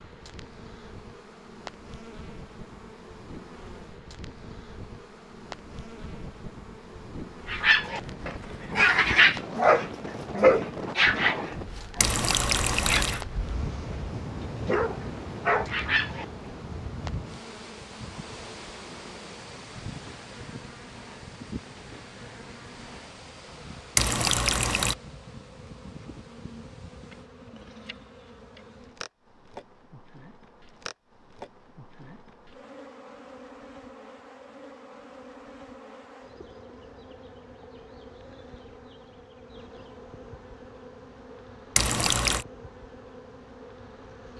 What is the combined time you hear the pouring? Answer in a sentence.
The pouring can be heard for 3 seconds in total.